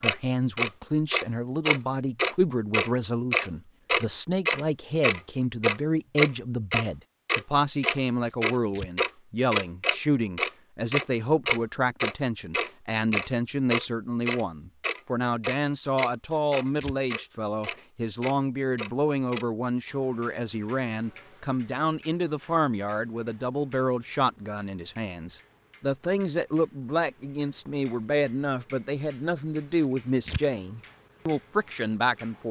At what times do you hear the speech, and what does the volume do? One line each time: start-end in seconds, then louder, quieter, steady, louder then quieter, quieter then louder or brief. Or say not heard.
0.0-32.4 steady.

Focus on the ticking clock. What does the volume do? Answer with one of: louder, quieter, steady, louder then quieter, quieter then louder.
quieter.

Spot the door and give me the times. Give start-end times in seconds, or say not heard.
not heard.